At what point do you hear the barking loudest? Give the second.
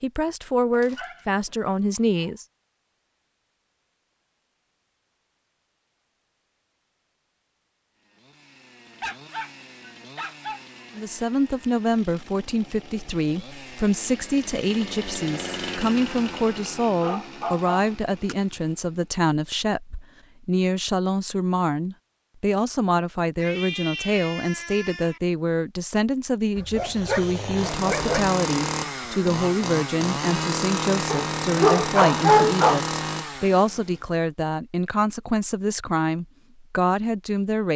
32 s.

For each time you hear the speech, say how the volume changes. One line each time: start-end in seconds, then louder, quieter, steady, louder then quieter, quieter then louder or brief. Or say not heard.
0.0-2.5 brief
10.9-37.7 steady.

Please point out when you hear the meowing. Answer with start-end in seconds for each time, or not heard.
23.4-25.2.